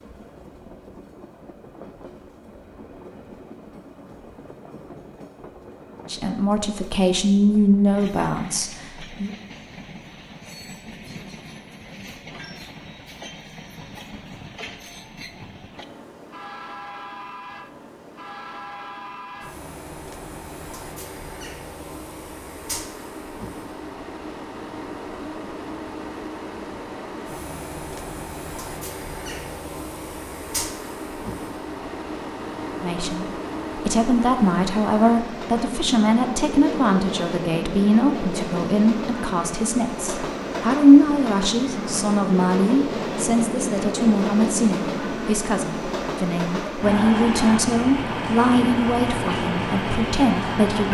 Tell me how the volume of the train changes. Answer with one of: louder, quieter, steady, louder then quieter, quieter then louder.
louder.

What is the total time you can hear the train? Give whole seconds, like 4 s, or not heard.
51 s.